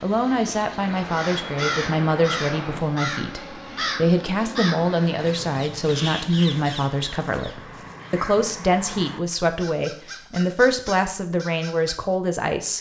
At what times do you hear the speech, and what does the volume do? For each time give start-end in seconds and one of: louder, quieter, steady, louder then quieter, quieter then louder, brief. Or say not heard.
0.0-12.7 steady.